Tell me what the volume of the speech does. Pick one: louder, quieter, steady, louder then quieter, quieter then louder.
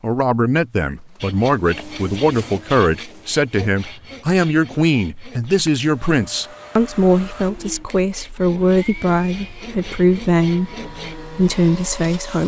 steady.